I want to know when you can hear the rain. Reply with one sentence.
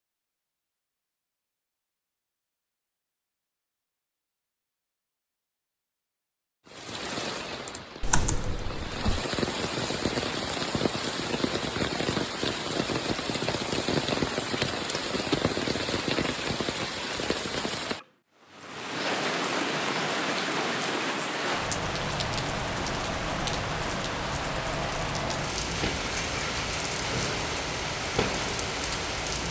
The rain can be heard from 6.7 to 29.4 s.